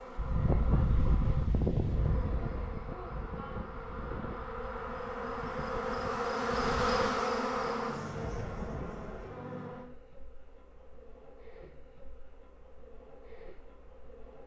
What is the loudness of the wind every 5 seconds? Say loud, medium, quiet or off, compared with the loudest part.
loud, medium, off.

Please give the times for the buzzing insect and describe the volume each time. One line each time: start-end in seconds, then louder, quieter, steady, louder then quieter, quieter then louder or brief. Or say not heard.
0.0-14.4 louder then quieter.